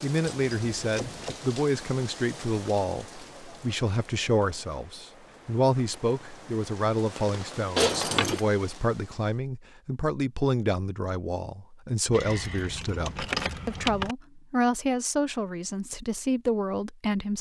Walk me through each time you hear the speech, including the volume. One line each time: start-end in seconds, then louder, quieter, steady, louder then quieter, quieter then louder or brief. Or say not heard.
0.0-17.3 steady.